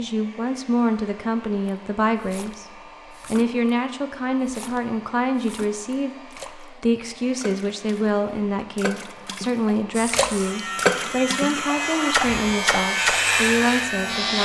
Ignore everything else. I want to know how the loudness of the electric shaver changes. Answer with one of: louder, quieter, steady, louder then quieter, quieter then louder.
louder.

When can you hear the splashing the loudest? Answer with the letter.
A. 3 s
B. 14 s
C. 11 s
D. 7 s
C.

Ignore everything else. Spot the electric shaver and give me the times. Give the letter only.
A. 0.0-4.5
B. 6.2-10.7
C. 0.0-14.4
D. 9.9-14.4
D.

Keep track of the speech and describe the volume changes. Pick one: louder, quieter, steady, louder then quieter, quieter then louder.
steady.